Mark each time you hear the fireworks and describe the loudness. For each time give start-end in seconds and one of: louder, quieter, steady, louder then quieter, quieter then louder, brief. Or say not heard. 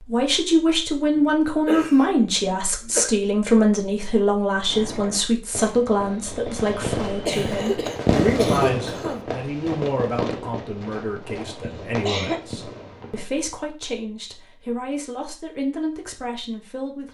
4.7-13.3 louder then quieter.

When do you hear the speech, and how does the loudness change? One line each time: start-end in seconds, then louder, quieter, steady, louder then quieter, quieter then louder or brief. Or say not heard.
0.0-17.0 quieter.